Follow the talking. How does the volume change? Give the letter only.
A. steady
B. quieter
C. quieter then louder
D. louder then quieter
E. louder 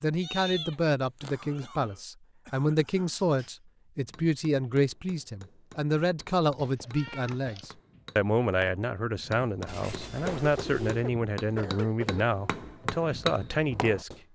A.